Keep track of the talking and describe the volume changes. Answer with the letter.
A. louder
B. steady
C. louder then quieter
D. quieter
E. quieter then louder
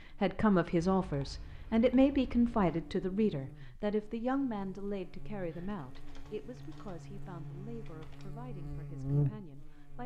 D.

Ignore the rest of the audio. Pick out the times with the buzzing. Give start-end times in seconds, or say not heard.
0.0-10.0.